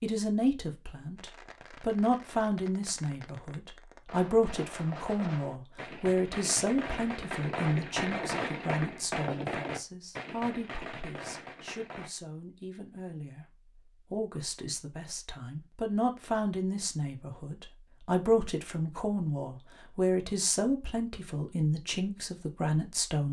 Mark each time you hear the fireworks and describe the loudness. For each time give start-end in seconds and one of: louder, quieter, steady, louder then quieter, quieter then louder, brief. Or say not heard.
1.1-12.1 louder then quieter.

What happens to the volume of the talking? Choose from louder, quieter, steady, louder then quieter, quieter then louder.
quieter then louder.